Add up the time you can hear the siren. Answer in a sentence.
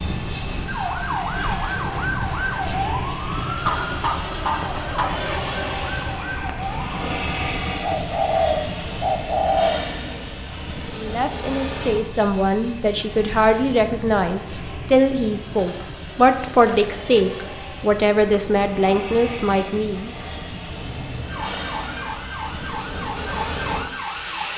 You can hear the siren for 11 seconds altogether.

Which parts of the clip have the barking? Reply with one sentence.
You can hear the barking from 3.6 to 5.2 s.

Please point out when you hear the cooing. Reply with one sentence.
You can hear the cooing from 7.8 to 9.8 s and from 15.6 to 17.1 s.